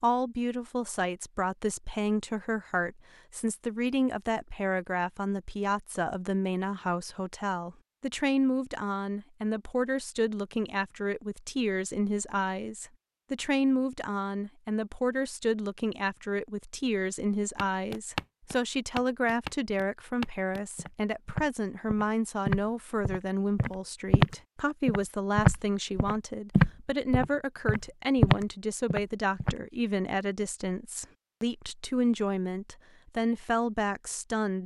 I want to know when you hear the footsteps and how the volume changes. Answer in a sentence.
You can hear the footsteps from 17.6 to 29.6 s, getting louder.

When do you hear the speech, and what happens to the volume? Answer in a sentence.
The speech can be heard from 0.0 to 34.6 s, at a steady volume.